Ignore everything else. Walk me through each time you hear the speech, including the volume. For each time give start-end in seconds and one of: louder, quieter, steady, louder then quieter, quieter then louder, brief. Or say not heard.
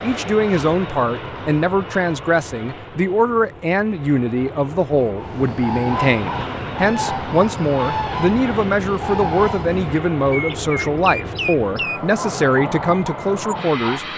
0.0-14.1 steady.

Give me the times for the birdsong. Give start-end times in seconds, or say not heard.
5.2-14.1.